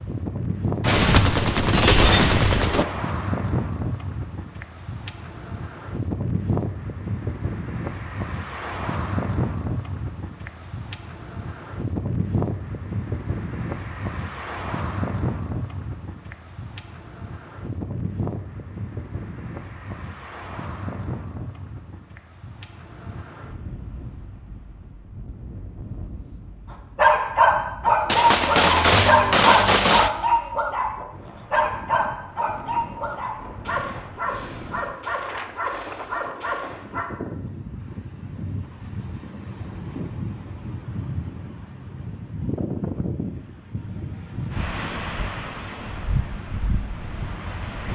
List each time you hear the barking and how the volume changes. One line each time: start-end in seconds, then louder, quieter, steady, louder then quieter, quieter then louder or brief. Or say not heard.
26.7-37.0 quieter.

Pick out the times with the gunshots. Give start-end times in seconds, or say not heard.
0.8-2.9, 28.1-30.1.